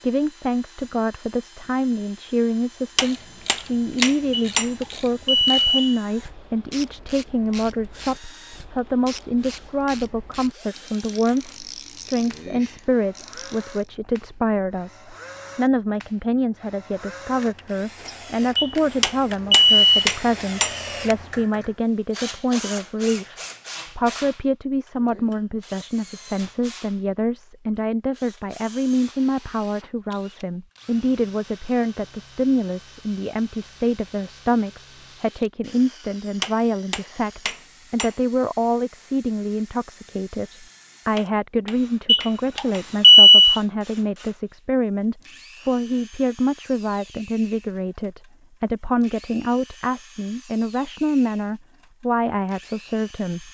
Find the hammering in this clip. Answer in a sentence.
You can hear the hammering from 3.0 to 4.8 s, from 19.0 to 20.8 s, from 36.4 to 38.1 s and from 41.1 to 42.9 s.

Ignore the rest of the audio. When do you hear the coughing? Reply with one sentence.
You can't hear the coughing here.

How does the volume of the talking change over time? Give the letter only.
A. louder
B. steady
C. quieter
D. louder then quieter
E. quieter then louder
B.